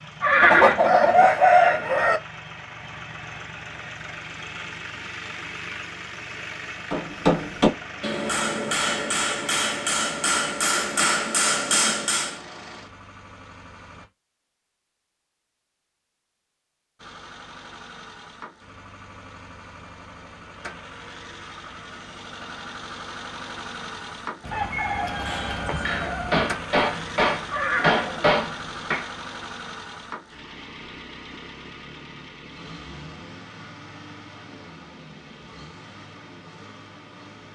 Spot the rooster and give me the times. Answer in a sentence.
The rooster can be heard from 0.4 to 2.2 s and from 24.4 to 26.4 s.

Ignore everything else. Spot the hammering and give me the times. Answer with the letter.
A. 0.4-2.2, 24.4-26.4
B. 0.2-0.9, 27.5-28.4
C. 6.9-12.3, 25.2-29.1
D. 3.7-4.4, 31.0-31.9
C.